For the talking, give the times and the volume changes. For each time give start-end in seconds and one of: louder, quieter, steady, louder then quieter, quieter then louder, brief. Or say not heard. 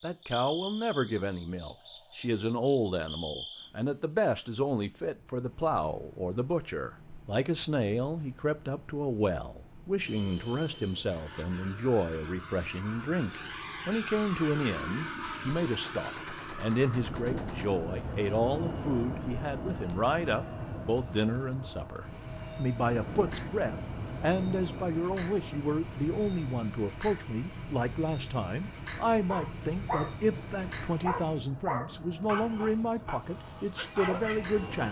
0.0-34.8 steady.